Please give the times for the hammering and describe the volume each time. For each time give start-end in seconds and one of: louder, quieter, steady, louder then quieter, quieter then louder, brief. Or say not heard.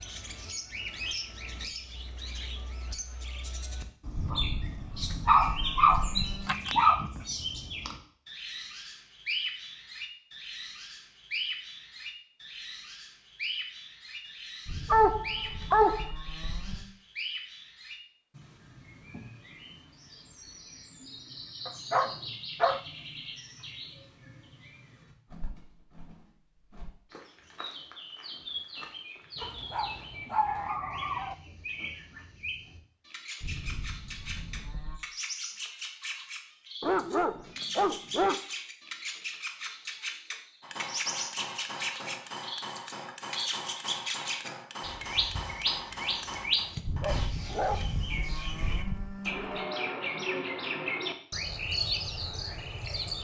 40.6-47.3 steady.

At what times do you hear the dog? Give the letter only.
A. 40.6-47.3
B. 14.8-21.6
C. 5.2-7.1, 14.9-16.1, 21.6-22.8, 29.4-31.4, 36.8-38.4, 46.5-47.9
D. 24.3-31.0
C.